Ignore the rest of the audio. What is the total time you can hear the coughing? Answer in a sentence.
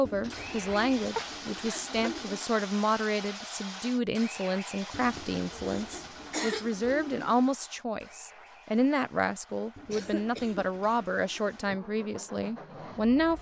The coughing can be heard for 3 seconds in total.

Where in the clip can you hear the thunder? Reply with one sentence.
You can't hear the thunder here.